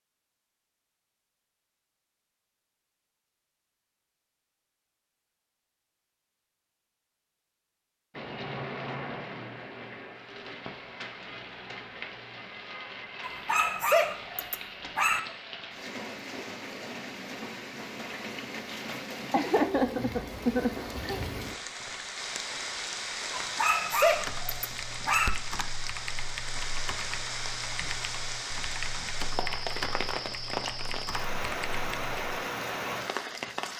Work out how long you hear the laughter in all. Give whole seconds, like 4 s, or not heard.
2 s.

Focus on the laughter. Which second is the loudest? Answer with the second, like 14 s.
20 s.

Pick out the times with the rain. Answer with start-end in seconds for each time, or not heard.
8.1-33.7.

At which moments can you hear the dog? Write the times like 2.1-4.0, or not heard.
13.2-15.2, 23.3-25.3.